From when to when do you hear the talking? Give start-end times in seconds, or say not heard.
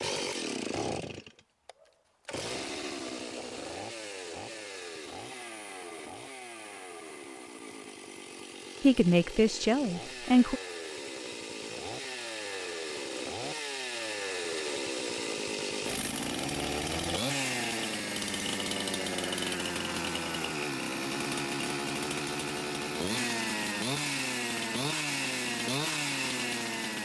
8.8-10.6.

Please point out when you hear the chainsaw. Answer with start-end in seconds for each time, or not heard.
0.0-27.0.